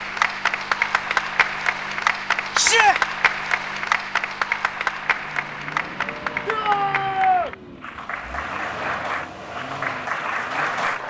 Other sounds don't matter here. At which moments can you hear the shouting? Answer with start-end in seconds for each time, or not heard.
2.5-3.0, 6.5-7.5.